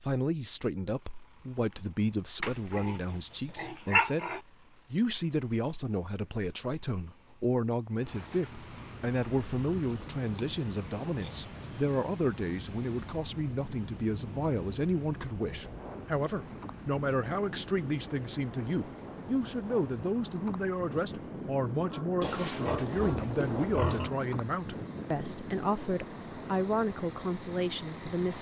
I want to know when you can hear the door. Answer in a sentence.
The door can't be heard in this clip.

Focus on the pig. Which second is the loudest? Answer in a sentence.
The volume of the pig peaks at 4 seconds.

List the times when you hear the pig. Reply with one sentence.
You can hear the pig from 2.4 to 4.4 s, from 9.8 to 11.8 s and from 22.2 to 24.1 s.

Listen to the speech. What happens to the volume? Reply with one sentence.
The loudness of the speech stays about the same.